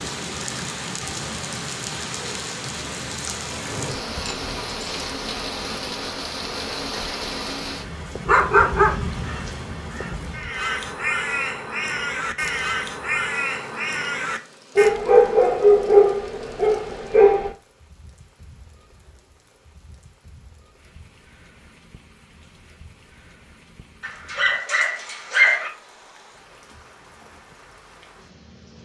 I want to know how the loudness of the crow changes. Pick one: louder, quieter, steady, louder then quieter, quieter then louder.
louder.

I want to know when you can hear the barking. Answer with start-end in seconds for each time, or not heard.
4.0-5.2, 8.2-9.8, 14.8-17.5, 24.0-25.7.